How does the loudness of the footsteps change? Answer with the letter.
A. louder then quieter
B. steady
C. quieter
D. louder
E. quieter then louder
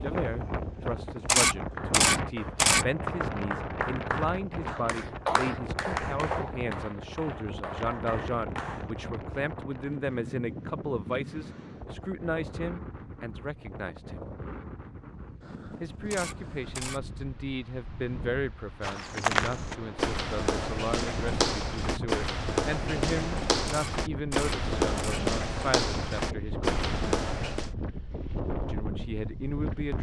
B.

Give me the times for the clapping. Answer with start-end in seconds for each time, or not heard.
1.6-8.8.